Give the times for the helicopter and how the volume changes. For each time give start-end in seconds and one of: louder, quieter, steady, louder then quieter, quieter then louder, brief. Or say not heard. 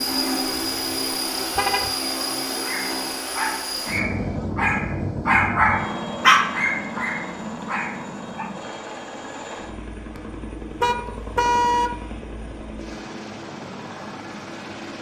0.0-14.9 quieter.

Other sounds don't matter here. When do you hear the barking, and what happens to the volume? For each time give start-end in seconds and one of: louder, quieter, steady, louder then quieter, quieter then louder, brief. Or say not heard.
2.6-8.8 louder then quieter.